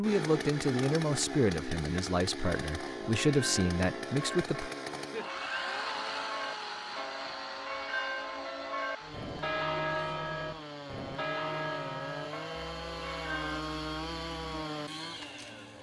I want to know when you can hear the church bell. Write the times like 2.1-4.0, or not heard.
1.9-13.7.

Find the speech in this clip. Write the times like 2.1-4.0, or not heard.
0.0-4.7.